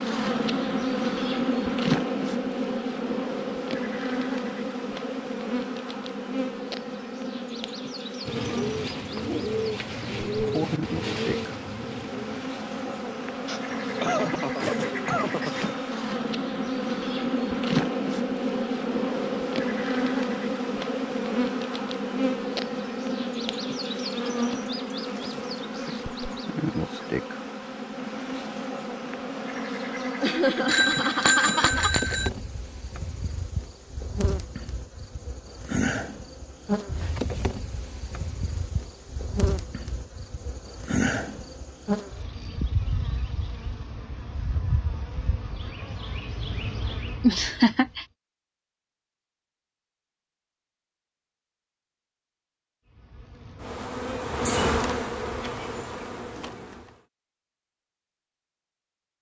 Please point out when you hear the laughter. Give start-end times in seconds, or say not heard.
13.4-15.7, 30.2-31.9, 47.2-48.0.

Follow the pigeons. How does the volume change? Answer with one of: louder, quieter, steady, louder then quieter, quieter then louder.
quieter then louder.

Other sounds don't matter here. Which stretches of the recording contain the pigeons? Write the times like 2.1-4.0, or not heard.
8.2-15.8.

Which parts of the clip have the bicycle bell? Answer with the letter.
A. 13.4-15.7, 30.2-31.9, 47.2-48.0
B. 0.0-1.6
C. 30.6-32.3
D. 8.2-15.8
C.